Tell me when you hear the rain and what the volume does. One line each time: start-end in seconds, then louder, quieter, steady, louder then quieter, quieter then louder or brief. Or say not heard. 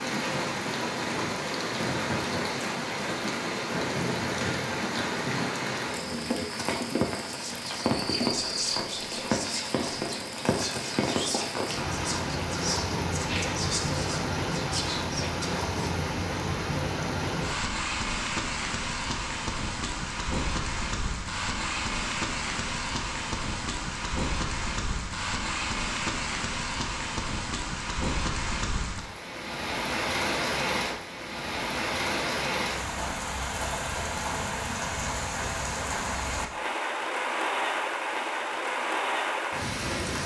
0.0-40.2 steady.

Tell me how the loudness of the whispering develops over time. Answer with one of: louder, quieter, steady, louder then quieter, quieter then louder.
steady.